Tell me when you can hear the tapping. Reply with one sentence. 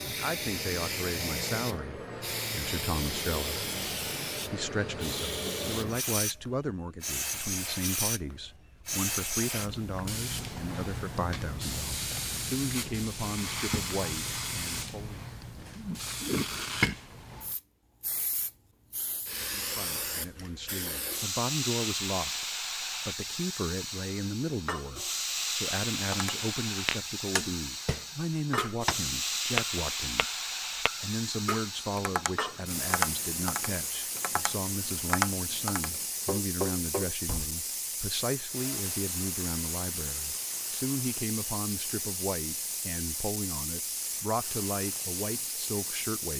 You can hear the tapping from 26.1 to 37.5 s.